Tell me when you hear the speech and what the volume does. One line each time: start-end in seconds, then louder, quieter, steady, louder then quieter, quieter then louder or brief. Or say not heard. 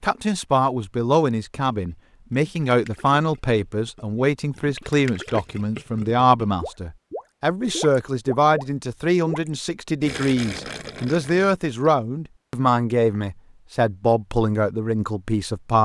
0.0-15.8 steady.